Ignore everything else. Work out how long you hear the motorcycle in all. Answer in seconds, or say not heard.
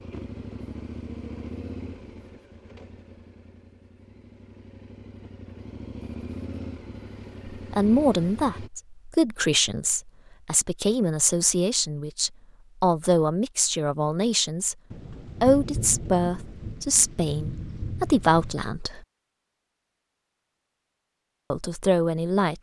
9 s.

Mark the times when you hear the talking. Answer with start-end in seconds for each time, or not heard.
7.5-14.8, 15.4-19.0, 21.5-22.5.